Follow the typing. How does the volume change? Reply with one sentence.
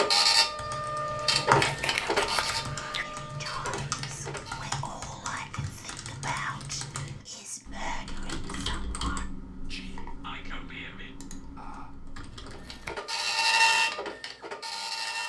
The volume of the typing goes down.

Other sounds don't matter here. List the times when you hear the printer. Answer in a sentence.
You can hear the printer from 0.0 to 4.7 s and from 12.4 to 15.2 s.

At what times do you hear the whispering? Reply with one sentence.
The whispering can be heard from 2.9 to 11.9 s.